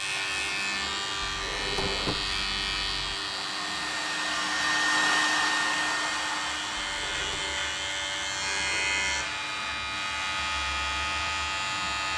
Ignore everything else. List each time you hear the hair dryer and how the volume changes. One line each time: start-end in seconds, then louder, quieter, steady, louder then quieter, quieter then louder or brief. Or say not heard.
0.0-12.1 louder then quieter.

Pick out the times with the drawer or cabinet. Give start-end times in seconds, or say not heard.
1.2-3.1, 6.8-7.5.